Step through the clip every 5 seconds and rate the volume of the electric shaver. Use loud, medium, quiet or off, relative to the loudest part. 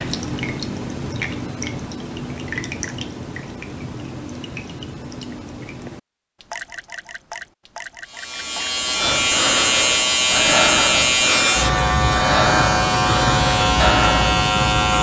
off, loud, loud.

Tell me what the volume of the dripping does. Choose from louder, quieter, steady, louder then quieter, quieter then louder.
quieter.